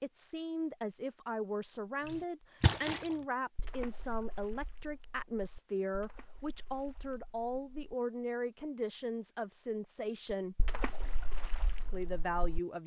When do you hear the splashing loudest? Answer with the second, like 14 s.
3 s.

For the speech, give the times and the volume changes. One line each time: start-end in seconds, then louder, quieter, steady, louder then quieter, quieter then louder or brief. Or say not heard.
0.0-10.6 steady
11.8-12.8 brief.